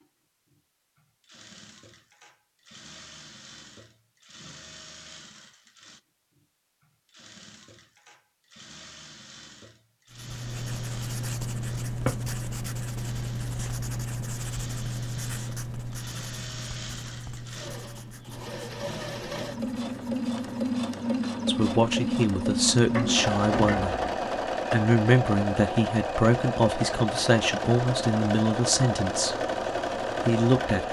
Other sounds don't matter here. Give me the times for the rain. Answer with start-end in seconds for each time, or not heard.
not heard.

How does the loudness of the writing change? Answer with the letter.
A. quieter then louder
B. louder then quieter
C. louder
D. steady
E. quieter
E.